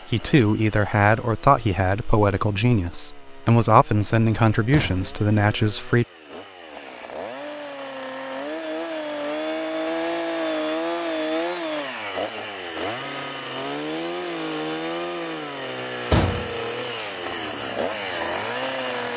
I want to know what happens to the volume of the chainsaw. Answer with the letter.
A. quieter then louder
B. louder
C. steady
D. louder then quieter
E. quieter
B.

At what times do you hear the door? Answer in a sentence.
The door can be heard from 4.7 to 5.2 s and from 16.1 to 17.1 s.